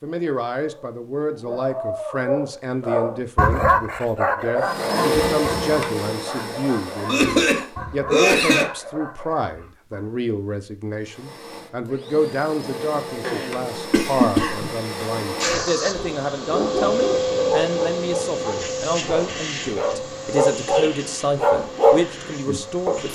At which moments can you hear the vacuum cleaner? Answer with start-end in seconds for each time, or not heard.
4.6-7.8, 11.0-23.1.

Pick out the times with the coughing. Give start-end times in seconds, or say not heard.
7.0-8.7, 12.8-14.7.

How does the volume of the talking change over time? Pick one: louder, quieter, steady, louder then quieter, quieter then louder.
steady.